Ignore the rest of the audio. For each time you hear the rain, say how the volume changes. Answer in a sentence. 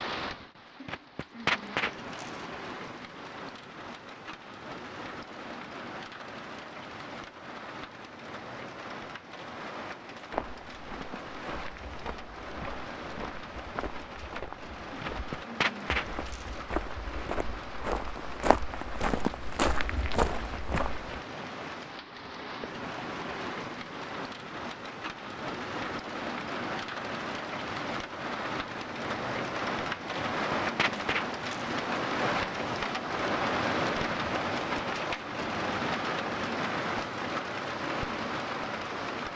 The rain can be heard from 0.0 to 39.3 s, getting louder.